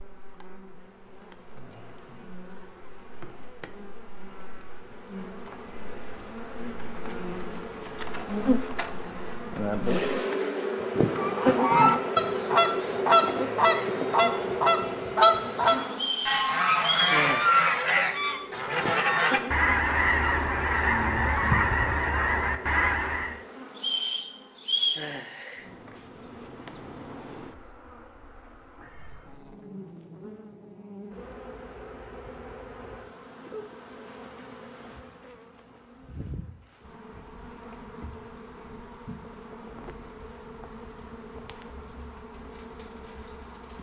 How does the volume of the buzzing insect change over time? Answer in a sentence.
The volume of the buzzing insect goes up, then down.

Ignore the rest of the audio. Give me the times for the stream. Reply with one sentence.
The stream can't be heard in this clip.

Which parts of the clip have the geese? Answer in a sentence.
The geese can be heard from 11.1 to 23.4 s.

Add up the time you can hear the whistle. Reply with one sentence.
The whistle can be heard for 3 seconds in total.